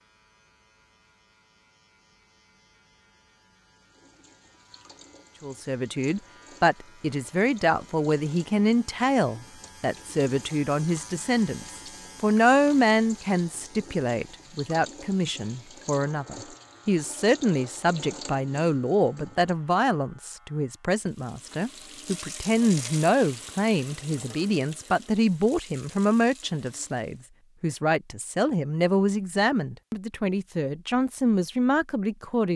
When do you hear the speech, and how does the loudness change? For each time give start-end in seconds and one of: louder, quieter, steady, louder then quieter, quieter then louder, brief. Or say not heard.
5.4-32.5 steady.